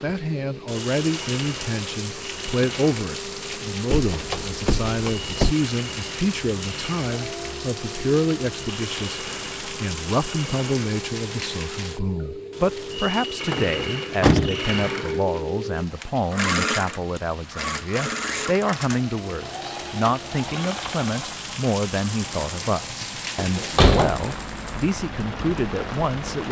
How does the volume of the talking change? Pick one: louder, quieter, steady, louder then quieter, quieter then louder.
steady.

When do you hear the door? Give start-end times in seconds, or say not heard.
3.9-5.5, 13.5-14.8, 23.4-24.2.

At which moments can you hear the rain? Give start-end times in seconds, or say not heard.
0.0-26.4.